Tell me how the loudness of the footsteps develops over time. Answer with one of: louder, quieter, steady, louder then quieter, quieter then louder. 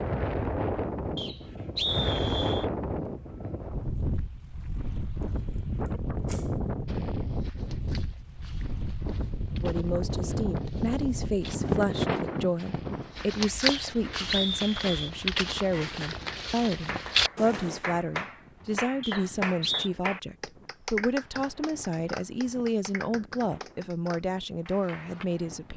louder.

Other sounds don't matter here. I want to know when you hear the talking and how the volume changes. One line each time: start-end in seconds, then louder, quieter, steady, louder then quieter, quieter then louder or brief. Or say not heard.
9.5-25.7 steady.